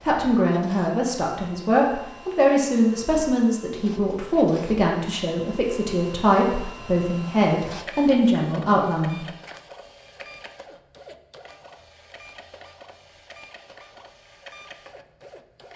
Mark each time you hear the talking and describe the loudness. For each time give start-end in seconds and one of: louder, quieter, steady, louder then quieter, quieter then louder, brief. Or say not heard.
0.0-9.2 steady.